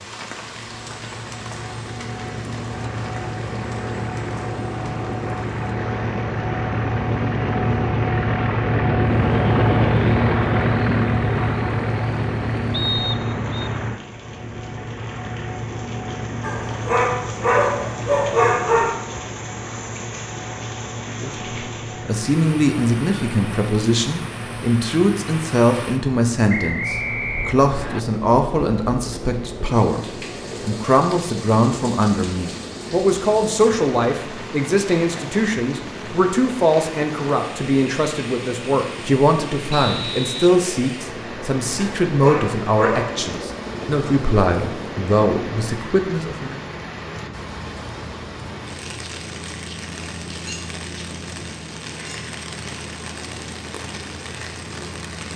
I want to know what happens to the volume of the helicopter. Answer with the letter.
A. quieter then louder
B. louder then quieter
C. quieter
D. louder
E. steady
C.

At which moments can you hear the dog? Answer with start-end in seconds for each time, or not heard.
16.4-18.9, 41.8-43.4.